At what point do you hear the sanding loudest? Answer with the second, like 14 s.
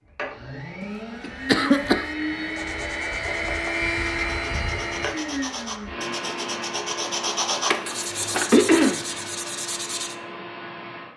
8 s.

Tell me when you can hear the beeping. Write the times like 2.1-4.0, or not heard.
not heard.